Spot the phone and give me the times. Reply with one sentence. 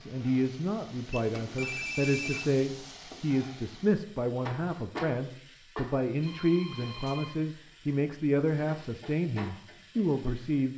You can hear the phone from 1.1 to 2.5 s and from 6.2 to 7.4 s.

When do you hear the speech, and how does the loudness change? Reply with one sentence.
The speech can be heard from 0.0 to 10.7 s, at a steady volume.